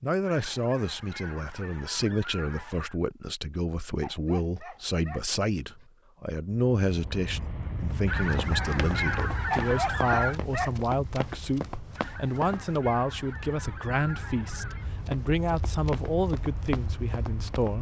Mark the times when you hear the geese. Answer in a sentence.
You can hear the geese from 0.2 to 3.0 s, from 8.1 to 10.4 s and from 11.9 to 14.9 s.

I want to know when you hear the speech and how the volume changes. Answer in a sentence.
You can hear the speech from 0.0 to 17.7 s, at a steady volume.